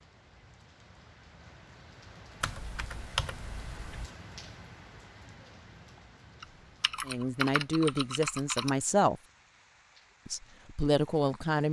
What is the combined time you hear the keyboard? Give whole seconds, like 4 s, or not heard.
4 s.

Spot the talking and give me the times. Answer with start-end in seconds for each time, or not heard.
7.0-9.2, 10.2-11.6.